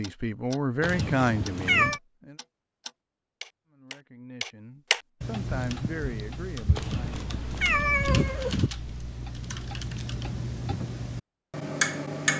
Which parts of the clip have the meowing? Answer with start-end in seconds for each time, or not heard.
0.8-2.0, 6.8-8.7.